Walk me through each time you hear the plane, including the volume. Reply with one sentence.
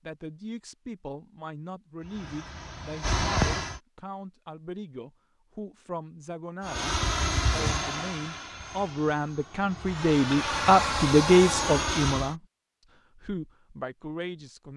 You can hear the plane briefly from 2.0 to 3.8 s; and from 6.6 to 12.3 s, getting quieter then louder.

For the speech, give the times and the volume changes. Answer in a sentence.
The speech can be heard from 0.1 to 12.4 s, getting louder; and briefly from 13.2 to 14.7 s.